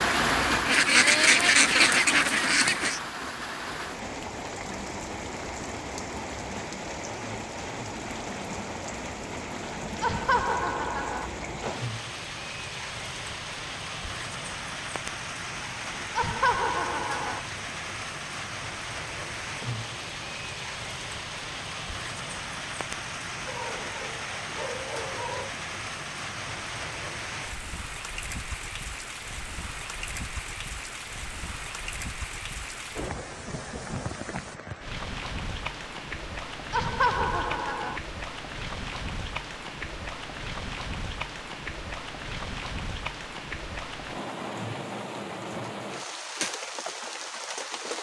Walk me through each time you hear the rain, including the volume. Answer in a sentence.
You can hear the rain from 0.0 to 47.9 s, at a steady volume.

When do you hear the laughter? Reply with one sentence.
You can hear the laughter from 10.0 to 11.3 s, from 16.1 to 17.4 s and from 36.7 to 38.0 s.